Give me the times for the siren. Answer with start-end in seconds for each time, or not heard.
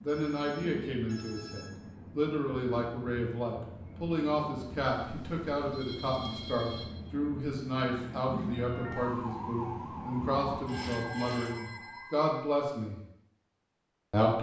8.6-12.2.